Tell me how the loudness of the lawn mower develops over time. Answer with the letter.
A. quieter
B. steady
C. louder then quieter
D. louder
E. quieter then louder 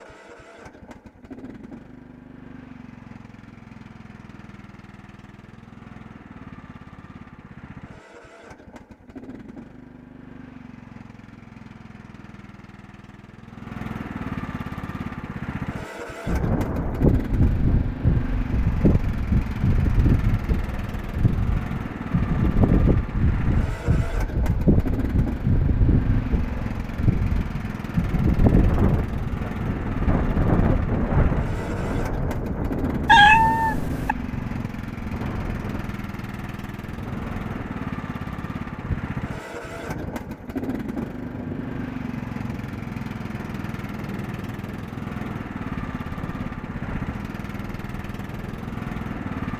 D.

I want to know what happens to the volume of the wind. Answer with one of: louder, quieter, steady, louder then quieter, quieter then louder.
quieter.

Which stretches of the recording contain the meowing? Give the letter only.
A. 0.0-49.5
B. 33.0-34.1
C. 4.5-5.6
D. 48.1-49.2
B.